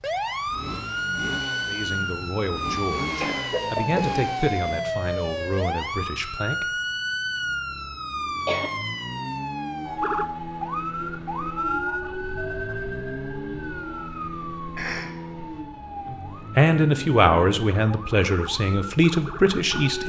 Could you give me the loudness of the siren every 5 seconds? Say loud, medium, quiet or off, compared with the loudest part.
loud, loud, loud, medium.